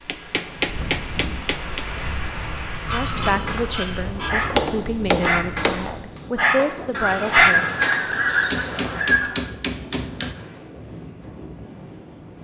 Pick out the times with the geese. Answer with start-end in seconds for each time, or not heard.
2.9-4.5, 6.9-9.4.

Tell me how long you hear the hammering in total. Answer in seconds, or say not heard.
5 s.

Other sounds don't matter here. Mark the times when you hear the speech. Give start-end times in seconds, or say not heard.
2.9-7.7.